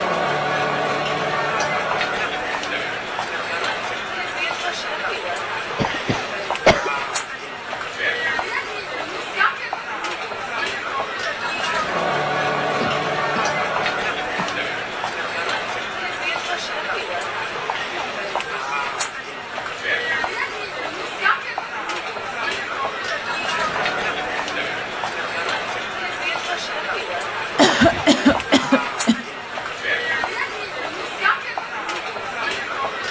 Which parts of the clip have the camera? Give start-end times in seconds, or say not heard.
not heard.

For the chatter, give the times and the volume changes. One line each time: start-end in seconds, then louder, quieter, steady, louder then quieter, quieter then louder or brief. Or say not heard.
0.0-33.0 steady.